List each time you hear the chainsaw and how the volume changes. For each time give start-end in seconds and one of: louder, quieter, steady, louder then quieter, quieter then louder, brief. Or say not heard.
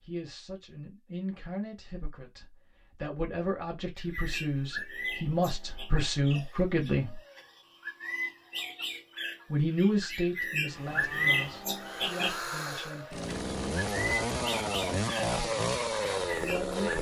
10.7-16.9 louder.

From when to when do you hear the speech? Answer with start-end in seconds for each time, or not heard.
0.0-7.2, 9.5-13.3, 15.3-16.9.